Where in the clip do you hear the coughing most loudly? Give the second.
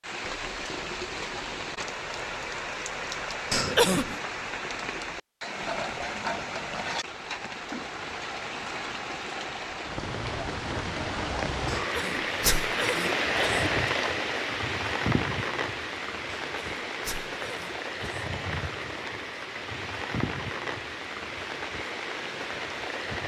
4 s.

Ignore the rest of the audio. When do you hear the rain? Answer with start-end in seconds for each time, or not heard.
0.0-23.2.